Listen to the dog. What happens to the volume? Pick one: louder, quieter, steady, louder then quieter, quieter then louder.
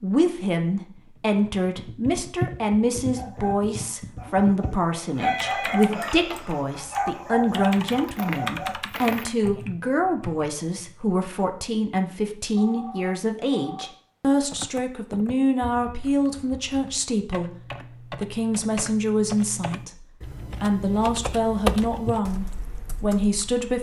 louder.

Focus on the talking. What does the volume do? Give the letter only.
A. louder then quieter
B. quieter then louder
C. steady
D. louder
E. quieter
C.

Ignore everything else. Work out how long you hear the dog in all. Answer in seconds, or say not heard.
6 s.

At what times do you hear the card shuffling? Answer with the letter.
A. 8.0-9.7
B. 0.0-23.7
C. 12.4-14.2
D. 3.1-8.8
A.